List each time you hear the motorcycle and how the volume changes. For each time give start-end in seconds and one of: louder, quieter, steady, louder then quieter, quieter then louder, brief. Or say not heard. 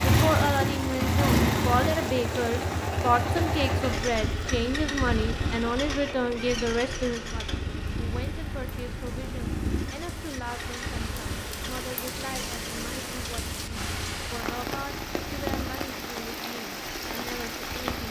0.0-18.0 quieter.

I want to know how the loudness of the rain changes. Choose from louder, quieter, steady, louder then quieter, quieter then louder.
quieter then louder.